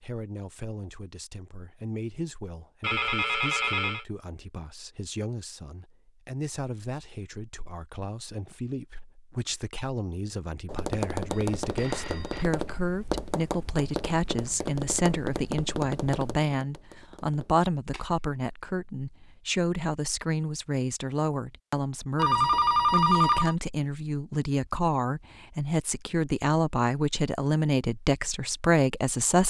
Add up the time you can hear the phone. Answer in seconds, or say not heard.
4 s.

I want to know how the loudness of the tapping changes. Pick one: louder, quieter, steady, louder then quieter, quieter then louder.
quieter.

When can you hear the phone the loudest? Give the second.
23 s.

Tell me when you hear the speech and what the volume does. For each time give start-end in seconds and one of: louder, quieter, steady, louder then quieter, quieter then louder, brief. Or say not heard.
0.0-29.4 louder.